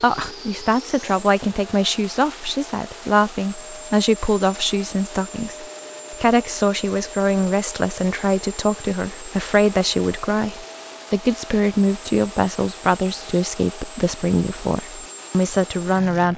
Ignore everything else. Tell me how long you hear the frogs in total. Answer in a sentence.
The frogs can't be heard in this clip.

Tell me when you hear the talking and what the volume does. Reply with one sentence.
You can hear the talking from 0.0 to 16.3 s, at a steady volume.